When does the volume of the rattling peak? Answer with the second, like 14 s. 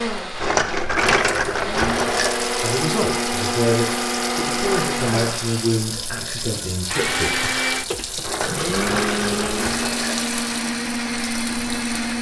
1 s.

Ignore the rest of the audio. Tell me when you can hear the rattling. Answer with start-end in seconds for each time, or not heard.
0.4-2.4, 4.5-5.3, 8.2-10.2.